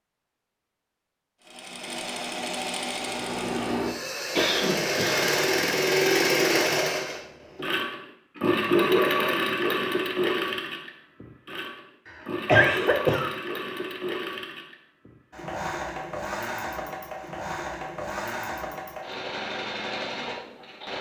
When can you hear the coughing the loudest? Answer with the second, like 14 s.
13 s.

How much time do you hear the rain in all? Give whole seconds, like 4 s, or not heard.
not heard.